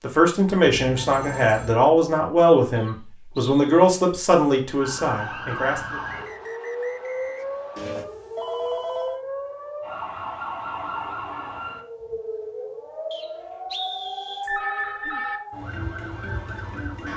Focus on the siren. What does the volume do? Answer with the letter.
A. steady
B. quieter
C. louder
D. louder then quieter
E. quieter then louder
A.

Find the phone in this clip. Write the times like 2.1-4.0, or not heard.
0.8-1.8, 7.8-9.2, 14.4-15.4.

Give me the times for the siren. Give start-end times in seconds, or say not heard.
4.8-17.1.